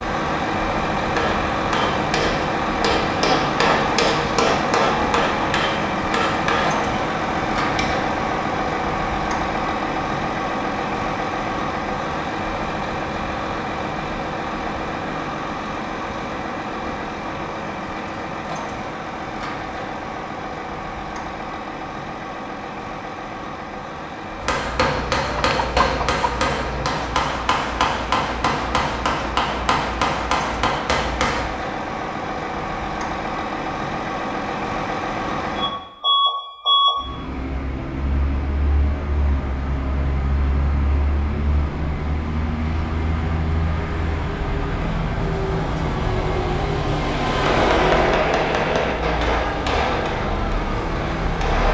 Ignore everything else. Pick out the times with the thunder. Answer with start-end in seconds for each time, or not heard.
not heard.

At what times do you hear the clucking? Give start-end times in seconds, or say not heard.
24.9-26.9.